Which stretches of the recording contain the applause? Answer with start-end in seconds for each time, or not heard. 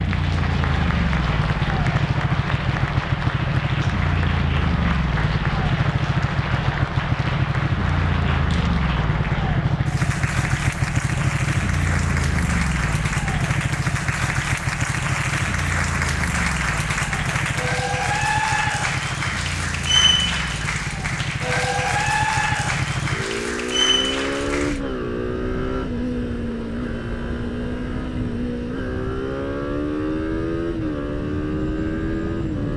0.0-24.8.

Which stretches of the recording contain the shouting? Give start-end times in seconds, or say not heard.
not heard.